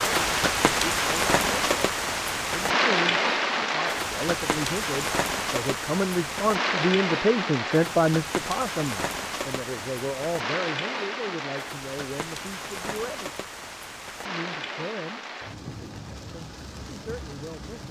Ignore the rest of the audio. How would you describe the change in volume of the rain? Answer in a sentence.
The loudness of the rain goes down.